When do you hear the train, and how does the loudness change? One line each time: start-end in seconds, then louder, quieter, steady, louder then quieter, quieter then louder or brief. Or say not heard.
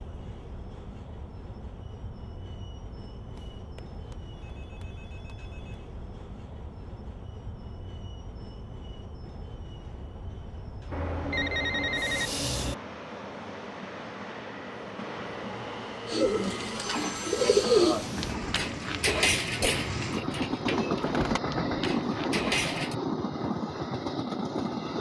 0.0-24.9 louder.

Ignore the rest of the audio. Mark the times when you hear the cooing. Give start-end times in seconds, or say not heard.
16.1-22.9.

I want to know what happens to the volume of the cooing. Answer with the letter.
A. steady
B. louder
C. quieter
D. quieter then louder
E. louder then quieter
C.